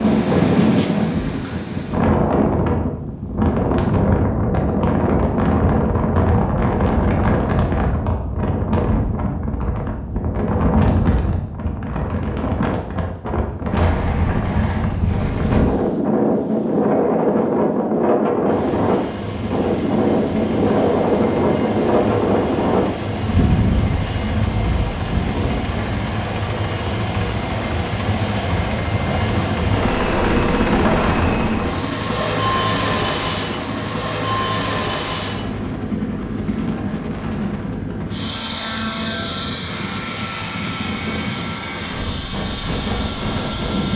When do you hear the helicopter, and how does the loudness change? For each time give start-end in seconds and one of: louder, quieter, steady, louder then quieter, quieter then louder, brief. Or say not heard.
18.4-43.9 louder then quieter.